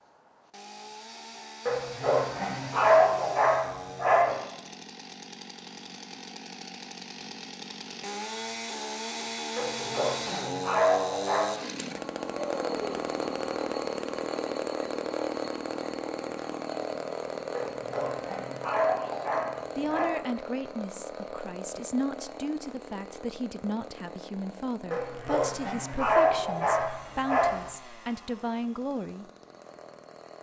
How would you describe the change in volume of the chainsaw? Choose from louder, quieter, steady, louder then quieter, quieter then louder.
louder then quieter.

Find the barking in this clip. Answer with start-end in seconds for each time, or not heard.
1.6-4.4, 9.6-11.6, 17.5-20.1, 24.9-27.6.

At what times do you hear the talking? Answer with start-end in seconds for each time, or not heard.
19.8-29.2.